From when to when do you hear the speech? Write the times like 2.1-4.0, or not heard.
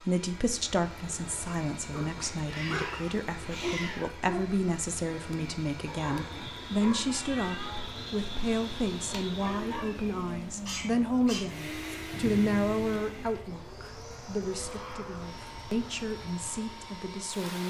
0.1-17.6.